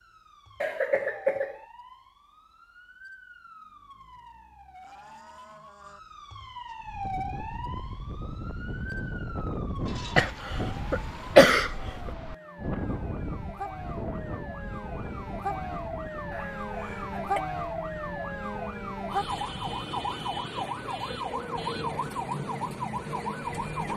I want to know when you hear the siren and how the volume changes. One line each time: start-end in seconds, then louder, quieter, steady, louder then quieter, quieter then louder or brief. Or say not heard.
0.0-23.9 louder.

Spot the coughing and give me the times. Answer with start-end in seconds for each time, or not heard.
0.6-1.6, 10.2-11.7, 16.3-17.4.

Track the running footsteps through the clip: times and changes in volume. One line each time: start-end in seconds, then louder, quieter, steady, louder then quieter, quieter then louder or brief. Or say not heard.
not heard.